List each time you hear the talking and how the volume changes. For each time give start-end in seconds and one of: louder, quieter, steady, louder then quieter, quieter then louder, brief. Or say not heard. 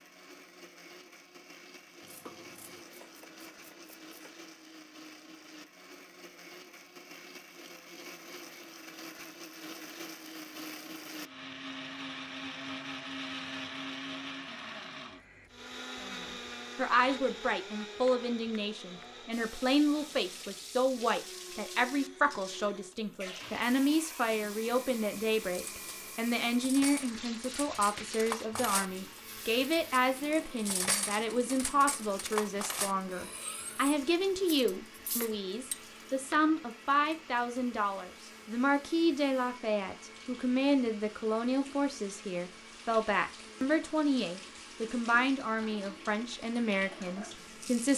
16.0-47.9 steady.